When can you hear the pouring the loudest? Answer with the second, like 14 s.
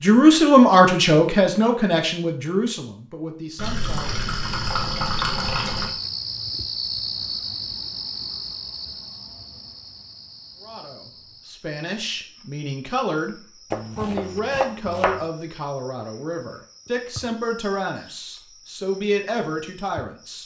5 s.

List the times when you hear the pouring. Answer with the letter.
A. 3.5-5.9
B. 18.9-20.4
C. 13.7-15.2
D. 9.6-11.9
A.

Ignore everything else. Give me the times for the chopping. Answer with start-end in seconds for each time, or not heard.
13.7-15.2.